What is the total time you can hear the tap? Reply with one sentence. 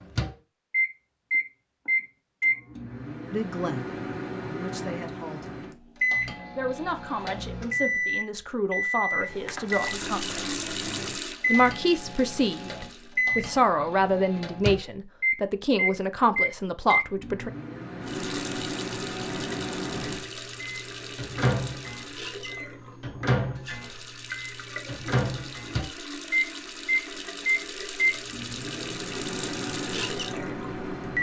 The tap can be heard for 16 seconds in total.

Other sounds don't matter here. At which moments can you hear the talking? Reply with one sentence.
You can hear the talking from 3.3 to 5.6 s, from 6.5 to 10.7 s and from 11.4 to 17.5 s.